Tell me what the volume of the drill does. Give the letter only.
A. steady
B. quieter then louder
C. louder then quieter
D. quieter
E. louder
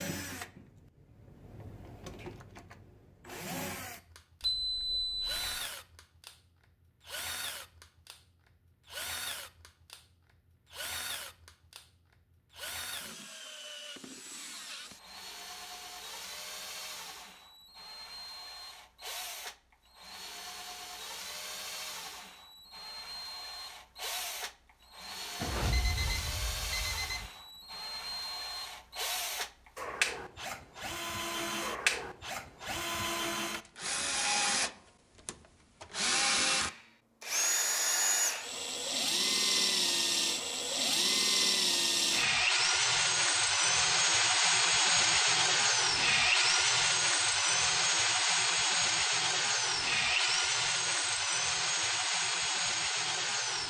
E.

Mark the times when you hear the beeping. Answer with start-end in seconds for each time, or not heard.
4.4-5.6, 25.4-27.3, 50.1-51.9.